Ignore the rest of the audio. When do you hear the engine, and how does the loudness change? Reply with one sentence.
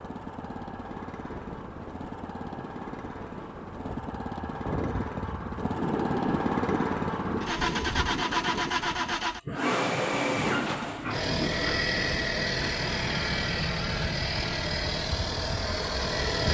You can hear the engine from 0.0 to 16.4 s, getting louder.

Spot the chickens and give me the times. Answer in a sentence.
You can't hear the chickens here.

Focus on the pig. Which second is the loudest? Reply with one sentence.
The volume of the pig peaks at 11 seconds.